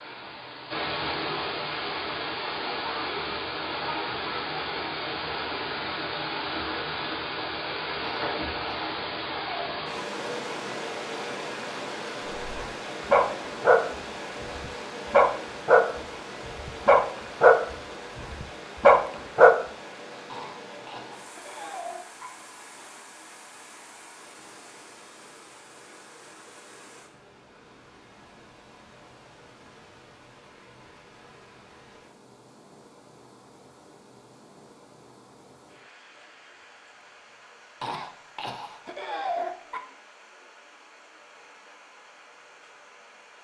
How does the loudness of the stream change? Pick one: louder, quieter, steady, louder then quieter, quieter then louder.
quieter.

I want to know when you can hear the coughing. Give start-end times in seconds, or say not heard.
8.0-9.8, 20.2-22.3, 37.8-39.8.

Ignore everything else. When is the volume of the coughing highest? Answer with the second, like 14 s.
39 s.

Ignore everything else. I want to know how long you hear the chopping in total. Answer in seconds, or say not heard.
not heard.